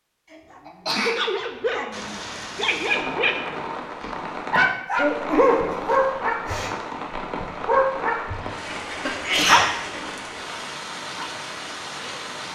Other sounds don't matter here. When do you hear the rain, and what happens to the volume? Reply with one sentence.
The rain can be heard from 1.9 to 12.5 s, at a steady volume.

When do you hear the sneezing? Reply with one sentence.
You can hear the sneezing from 0.3 to 1.2 s, from 4.5 to 6.7 s and from 8.4 to 9.8 s.